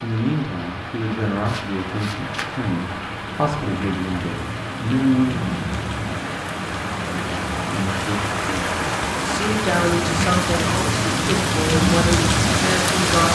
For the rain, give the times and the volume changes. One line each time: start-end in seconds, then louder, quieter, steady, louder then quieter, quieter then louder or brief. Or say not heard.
0.0-13.3 louder.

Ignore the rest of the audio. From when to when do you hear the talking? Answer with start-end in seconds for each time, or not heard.
0.0-5.5, 7.7-13.3.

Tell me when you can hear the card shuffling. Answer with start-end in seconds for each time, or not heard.
1.4-2.6.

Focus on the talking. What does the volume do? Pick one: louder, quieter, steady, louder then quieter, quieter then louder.
steady.